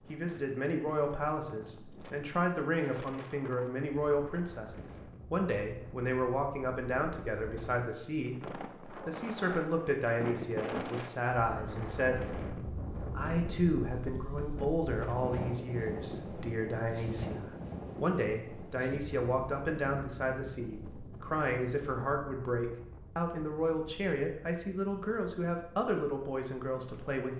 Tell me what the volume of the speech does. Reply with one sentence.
The volume of the speech stays about the same.